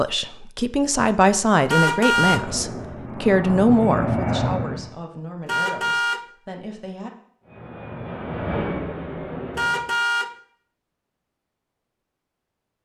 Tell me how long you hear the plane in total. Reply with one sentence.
You can hear the plane for 5 seconds altogether.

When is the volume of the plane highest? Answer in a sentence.
The volume of the plane peaks at 4 seconds.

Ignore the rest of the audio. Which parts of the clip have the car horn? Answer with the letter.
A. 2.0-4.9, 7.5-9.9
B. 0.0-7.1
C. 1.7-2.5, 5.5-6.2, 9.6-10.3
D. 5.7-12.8
C.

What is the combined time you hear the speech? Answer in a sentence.
You can hear the speech for 7 seconds altogether.